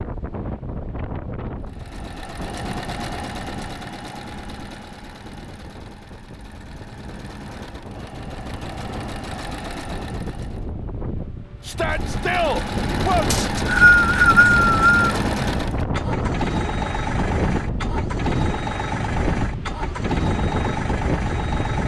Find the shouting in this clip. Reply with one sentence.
You can hear the shouting from 11.7 to 13.2 s.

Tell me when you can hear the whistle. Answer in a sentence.
The whistle can be heard from 13.3 to 15.1 s.